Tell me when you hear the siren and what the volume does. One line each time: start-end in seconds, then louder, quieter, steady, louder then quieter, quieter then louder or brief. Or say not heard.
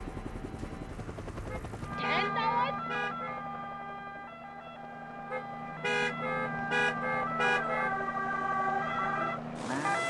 1.8-10.0 quieter then louder.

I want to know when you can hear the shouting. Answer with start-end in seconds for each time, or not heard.
1.9-2.8.